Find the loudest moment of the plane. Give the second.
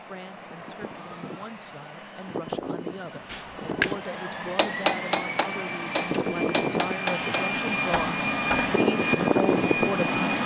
9 s.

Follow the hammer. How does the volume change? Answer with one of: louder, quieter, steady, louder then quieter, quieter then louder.
quieter.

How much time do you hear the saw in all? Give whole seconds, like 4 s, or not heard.
not heard.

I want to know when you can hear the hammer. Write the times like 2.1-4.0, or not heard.
3.3-8.8.